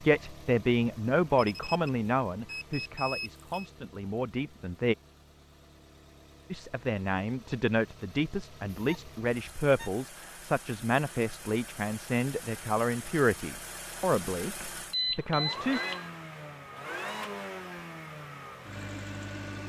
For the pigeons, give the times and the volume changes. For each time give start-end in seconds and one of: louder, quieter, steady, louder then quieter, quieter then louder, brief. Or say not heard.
not heard.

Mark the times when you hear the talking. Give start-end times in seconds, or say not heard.
0.0-5.0, 6.5-15.8.